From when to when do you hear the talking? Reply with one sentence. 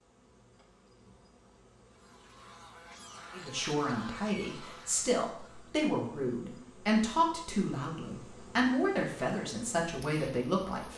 You can hear the talking from 3.4 to 10.9 s.